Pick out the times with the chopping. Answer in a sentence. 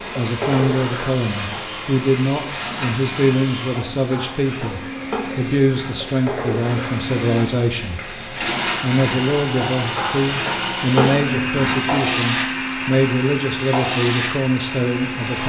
The chopping can't be heard in this clip.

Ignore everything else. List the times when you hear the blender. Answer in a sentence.
You can hear the blender from 0.0 to 15.4 s.